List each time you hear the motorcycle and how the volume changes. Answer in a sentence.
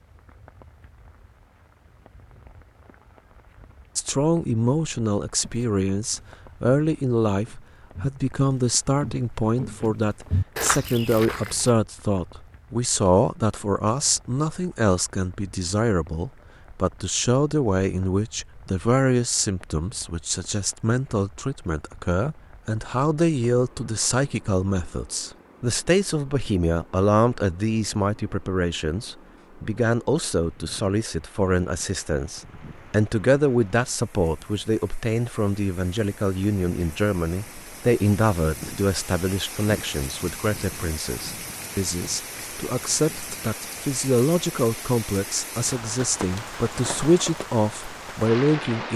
The motorcycle can't be heard in this clip.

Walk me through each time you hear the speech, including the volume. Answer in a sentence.
You can hear the speech from 4.0 to 48.9 s, at a steady volume.